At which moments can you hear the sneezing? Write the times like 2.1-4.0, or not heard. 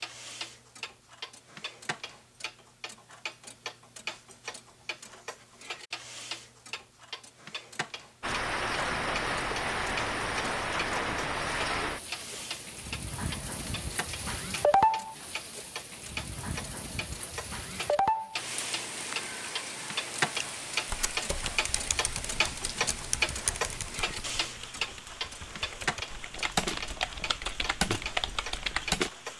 not heard.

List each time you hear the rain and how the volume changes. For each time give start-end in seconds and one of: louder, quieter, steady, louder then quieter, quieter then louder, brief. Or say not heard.
8.2-29.3 quieter.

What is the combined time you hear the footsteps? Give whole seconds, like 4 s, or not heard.
not heard.